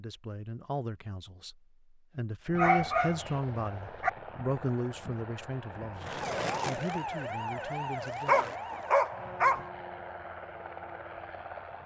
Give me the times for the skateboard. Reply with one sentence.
The skateboard can be heard from 6.0 to 9.1 s.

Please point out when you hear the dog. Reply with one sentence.
You can hear the dog from 2.5 to 4.1 s and from 8.2 to 9.7 s.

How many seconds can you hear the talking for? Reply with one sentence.
You can hear the talking for 9 seconds altogether.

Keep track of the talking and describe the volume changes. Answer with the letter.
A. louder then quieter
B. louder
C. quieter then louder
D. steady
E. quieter
A.